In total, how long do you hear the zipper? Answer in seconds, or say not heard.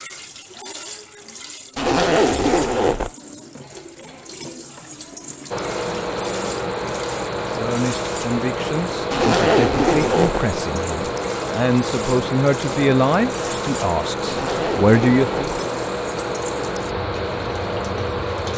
4 s.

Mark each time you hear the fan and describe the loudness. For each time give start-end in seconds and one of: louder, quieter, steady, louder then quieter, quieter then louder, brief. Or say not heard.
5.5-18.5 steady.